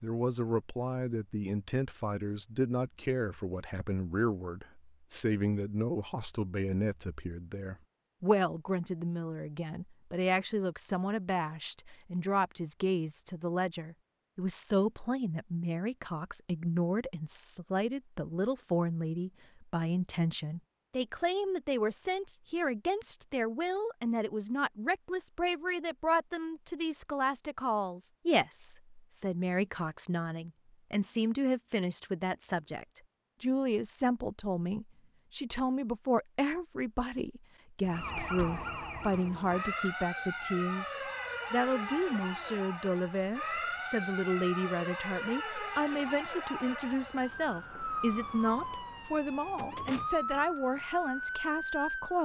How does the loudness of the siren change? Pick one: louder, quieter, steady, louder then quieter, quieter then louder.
steady.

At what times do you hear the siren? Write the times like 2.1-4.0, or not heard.
37.8-52.1.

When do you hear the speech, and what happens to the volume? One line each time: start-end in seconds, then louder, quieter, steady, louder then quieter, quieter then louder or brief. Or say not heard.
0.0-52.1 steady.